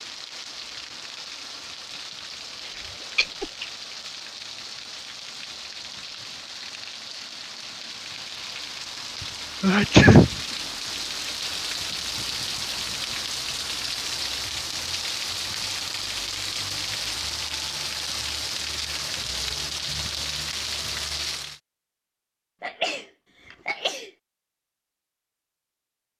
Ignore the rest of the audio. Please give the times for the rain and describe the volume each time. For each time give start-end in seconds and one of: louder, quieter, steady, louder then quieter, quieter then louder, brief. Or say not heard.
0.0-21.6 louder.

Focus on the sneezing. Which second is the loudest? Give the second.
10 s.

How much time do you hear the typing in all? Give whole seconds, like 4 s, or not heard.
not heard.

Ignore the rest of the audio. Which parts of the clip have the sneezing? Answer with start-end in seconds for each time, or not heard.
2.6-3.6, 9.6-10.3, 22.6-24.1.